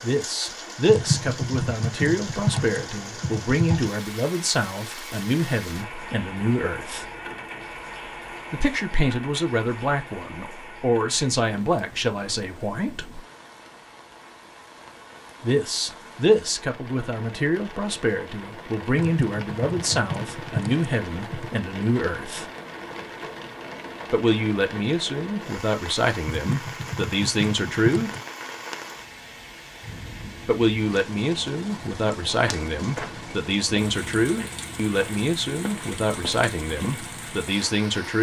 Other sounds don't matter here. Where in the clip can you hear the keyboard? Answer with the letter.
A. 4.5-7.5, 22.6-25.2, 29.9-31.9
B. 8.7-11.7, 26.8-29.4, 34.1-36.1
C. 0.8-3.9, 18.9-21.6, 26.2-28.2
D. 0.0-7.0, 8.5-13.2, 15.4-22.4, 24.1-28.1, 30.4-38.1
C.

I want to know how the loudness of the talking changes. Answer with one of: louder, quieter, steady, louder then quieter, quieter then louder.
steady.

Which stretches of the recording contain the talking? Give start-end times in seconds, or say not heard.
0.0-7.0, 8.5-13.2, 15.4-22.4, 24.1-28.1, 30.4-38.1.